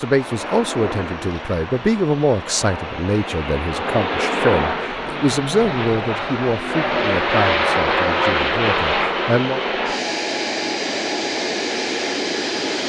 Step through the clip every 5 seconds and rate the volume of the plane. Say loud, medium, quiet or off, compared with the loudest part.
medium, loud, loud.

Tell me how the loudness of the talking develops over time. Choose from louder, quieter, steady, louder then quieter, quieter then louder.
quieter.